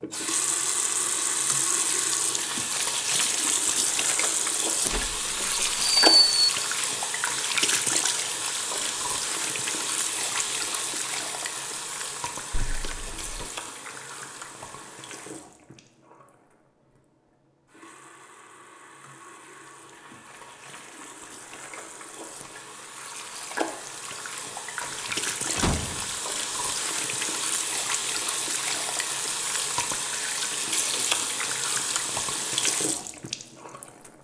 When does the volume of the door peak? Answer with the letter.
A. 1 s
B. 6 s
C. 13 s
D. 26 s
B.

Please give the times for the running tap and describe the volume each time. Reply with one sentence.
The running tap can be heard from 0.0 to 34.1 s, getting quieter then louder.